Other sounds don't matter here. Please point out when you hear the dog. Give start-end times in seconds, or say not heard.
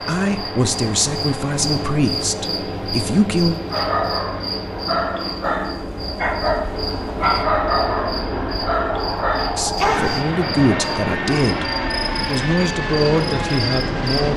3.7-10.2.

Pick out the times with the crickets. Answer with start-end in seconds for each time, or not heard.
0.0-14.3.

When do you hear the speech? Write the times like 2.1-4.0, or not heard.
0.1-3.6, 9.6-14.3.